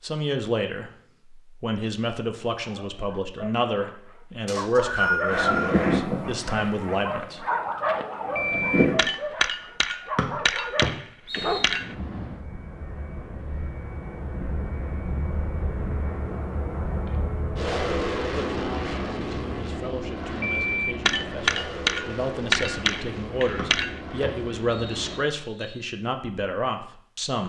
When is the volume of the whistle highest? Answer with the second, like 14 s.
5 s.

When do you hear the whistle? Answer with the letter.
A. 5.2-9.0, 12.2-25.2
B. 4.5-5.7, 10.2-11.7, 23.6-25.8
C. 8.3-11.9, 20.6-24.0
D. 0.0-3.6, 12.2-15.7
B.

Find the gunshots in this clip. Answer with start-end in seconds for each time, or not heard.
8.3-11.9, 20.6-24.0.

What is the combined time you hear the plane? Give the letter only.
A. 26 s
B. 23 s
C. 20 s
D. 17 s
D.